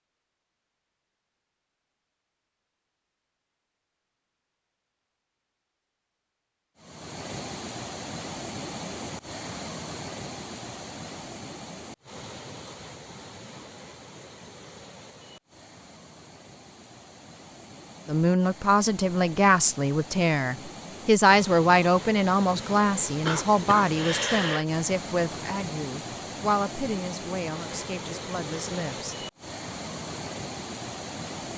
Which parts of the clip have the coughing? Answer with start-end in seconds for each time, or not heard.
23.2-24.6.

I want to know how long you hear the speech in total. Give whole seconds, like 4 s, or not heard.
11 s.